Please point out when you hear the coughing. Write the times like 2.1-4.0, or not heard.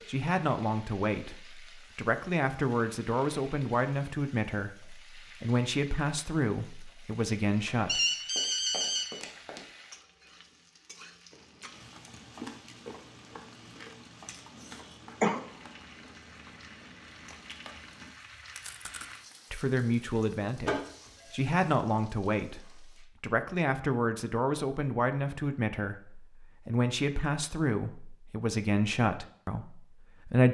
14.7-15.4.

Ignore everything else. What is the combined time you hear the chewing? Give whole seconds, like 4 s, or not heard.
8 s.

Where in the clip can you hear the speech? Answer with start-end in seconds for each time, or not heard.
0.1-8.0, 19.5-30.5.